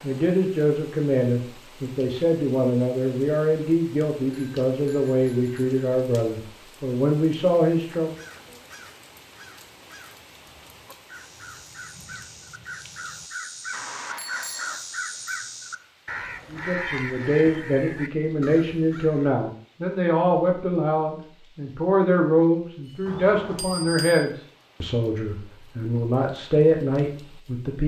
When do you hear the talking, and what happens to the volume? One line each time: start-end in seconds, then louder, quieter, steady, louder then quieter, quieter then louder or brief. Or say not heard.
0.0-8.2 steady
16.5-27.8 steady.